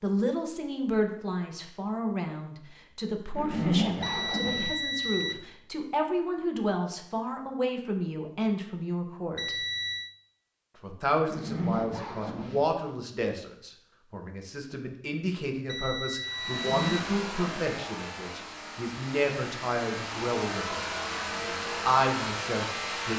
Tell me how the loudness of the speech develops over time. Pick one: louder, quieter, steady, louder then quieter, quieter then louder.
steady.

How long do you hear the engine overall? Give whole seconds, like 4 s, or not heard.
7 s.